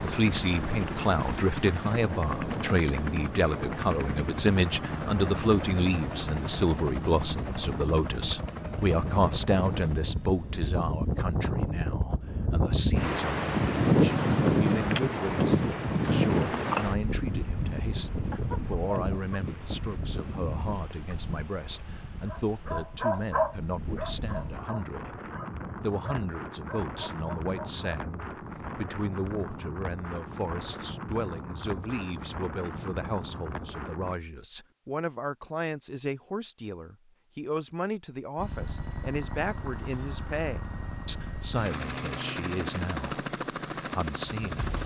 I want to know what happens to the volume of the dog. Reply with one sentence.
The volume of the dog goes down.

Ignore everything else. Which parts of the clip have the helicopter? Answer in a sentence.
You can hear the helicopter from 0.0 to 11.8 s and from 38.4 to 44.8 s.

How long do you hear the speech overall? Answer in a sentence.
The speech can be heard for 45 seconds in total.